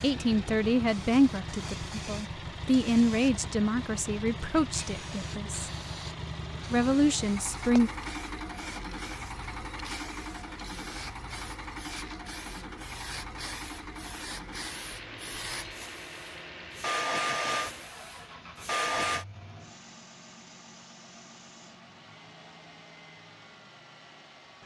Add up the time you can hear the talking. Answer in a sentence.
The talking can be heard for 7 seconds in total.